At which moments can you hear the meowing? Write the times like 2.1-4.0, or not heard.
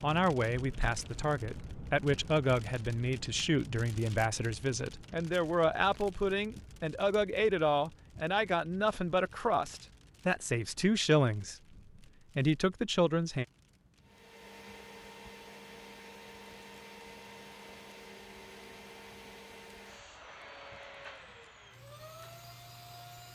not heard.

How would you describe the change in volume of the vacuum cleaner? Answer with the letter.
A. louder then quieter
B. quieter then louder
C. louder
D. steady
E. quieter
D.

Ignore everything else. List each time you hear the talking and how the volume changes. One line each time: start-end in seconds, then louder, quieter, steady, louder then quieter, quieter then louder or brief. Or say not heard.
0.0-11.6 steady
12.3-13.4 brief.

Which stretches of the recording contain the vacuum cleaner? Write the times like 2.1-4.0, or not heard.
14.0-23.3.